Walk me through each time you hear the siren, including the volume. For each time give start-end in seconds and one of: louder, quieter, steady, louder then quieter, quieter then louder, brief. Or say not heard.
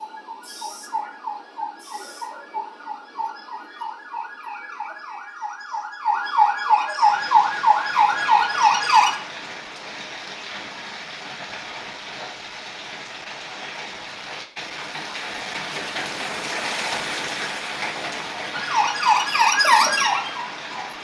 0.0-9.2 louder
18.5-21.0 brief.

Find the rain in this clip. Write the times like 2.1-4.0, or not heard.
7.0-21.0.